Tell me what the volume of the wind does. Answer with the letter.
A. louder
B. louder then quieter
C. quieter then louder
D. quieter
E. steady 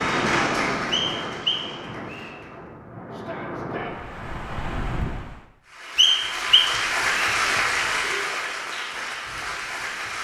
C.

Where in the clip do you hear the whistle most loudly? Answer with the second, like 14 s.
6 s.